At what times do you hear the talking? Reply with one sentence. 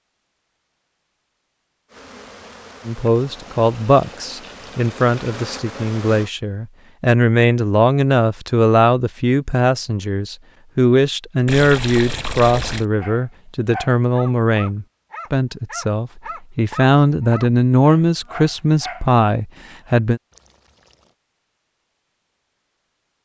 The talking can be heard from 2.9 to 20.2 s.